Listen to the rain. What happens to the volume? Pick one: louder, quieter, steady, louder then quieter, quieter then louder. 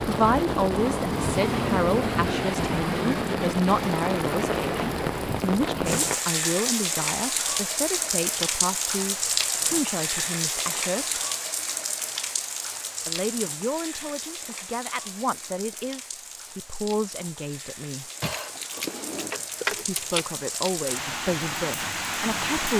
quieter then louder.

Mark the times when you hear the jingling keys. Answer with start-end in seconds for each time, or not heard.
4.7-6.2, 18.2-20.2.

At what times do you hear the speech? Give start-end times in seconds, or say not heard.
0.0-11.2, 13.1-18.1, 19.7-22.7.